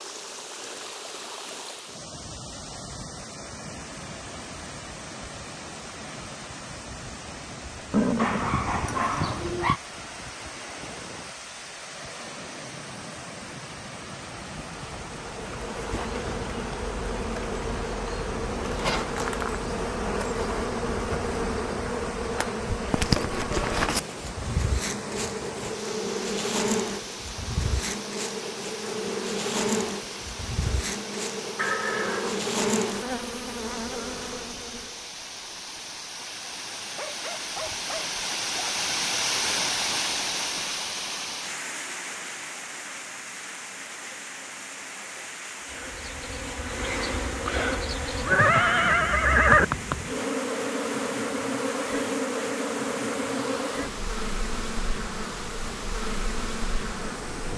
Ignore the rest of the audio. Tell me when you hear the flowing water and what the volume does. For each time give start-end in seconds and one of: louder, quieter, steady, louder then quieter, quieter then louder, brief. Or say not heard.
0.0-57.5 louder then quieter.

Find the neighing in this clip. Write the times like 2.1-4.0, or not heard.
7.9-9.2, 31.6-32.5, 48.2-49.6.